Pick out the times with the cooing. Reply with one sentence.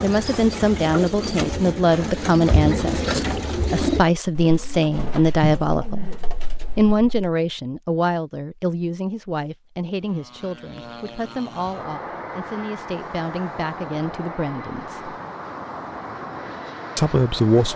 The cooing can be heard from 0.0 to 7.2 s.